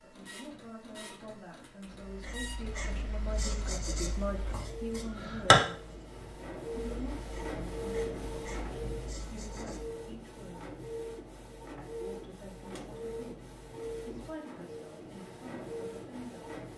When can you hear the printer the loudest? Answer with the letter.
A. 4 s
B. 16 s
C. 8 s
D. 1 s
C.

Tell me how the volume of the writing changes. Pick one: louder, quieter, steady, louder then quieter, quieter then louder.
louder then quieter.